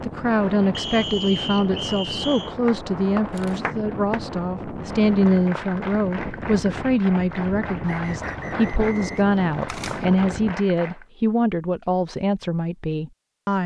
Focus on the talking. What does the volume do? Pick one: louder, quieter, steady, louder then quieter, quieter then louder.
steady.